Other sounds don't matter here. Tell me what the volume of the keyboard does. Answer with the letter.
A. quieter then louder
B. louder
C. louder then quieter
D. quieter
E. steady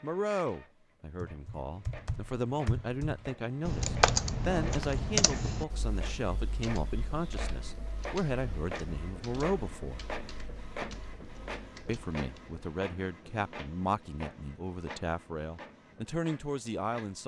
C.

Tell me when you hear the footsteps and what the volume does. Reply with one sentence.
The footsteps can't be heard in this clip.